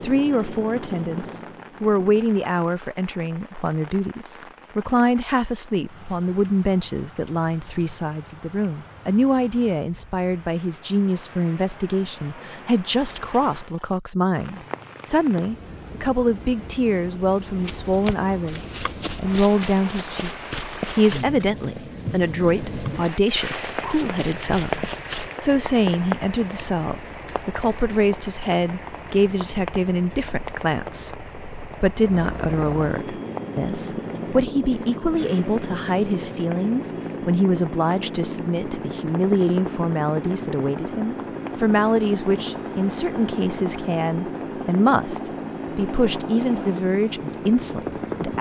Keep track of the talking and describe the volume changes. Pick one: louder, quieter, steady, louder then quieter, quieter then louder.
steady.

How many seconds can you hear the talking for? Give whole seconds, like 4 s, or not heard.
48 s.